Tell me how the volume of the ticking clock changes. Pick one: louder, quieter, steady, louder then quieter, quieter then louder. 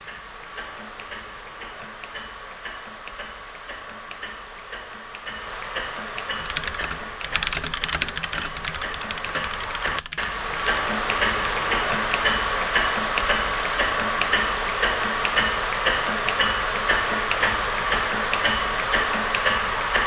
louder.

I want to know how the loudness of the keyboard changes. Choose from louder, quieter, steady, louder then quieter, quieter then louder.
quieter.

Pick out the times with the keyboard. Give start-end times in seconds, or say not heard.
6.3-13.8.